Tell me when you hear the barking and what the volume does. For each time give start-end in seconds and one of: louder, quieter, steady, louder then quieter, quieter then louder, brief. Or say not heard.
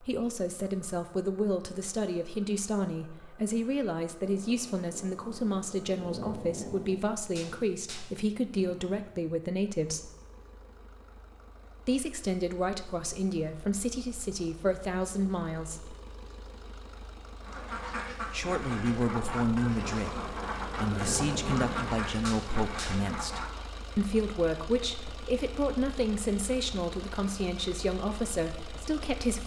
not heard.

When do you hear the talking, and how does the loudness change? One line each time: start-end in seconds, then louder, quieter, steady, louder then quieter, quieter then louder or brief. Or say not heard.
0.0-10.1 steady
11.8-15.9 steady
18.3-29.4 steady.